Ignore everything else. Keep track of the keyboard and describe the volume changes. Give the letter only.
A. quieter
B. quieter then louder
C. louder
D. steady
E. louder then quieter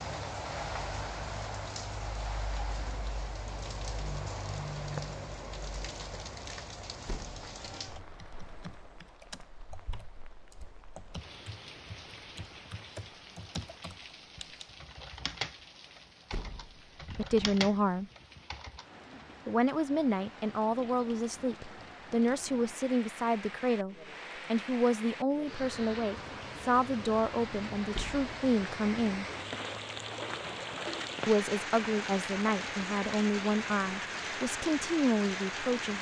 C.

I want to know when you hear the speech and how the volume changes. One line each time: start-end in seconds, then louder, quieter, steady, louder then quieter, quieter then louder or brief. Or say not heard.
17.1-18.1 brief
19.4-29.2 steady
31.2-35.9 steady.